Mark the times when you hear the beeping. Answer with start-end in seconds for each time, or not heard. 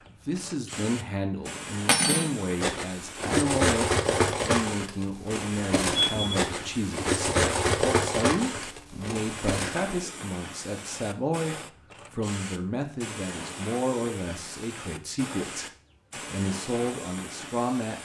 6.0-6.7.